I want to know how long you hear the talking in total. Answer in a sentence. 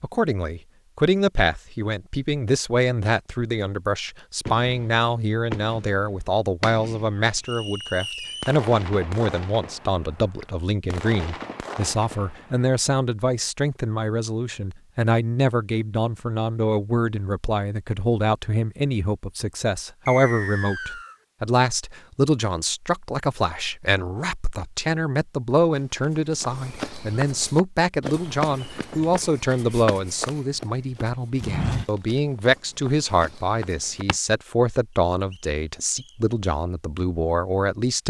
You can hear the talking for 38 seconds altogether.